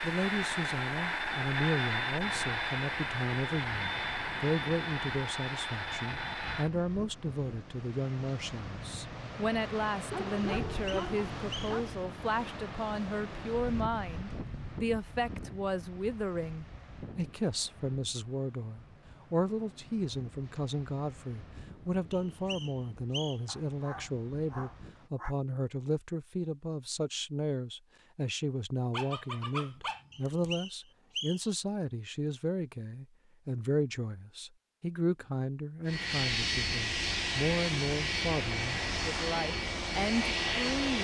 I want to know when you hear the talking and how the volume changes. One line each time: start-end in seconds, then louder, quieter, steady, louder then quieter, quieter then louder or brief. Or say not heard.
0.0-41.0 steady.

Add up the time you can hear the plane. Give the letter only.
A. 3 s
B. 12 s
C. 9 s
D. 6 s
B.